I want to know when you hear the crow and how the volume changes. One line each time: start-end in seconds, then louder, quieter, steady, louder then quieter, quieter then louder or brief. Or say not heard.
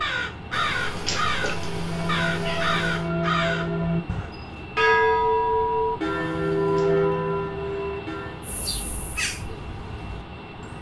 0.0-4.3 steady
8.4-10.7 brief.